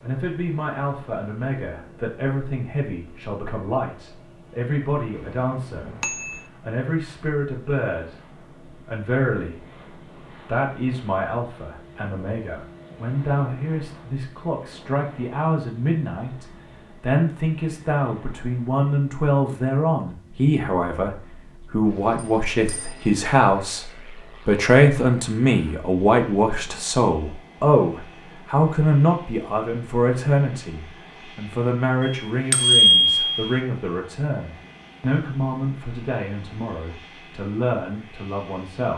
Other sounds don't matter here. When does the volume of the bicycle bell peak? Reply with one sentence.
The volume of the bicycle bell peaks at 33 seconds.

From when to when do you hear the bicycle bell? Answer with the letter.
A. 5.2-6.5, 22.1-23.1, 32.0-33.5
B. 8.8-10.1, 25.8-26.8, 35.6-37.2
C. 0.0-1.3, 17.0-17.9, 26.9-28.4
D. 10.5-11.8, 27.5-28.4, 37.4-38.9
A.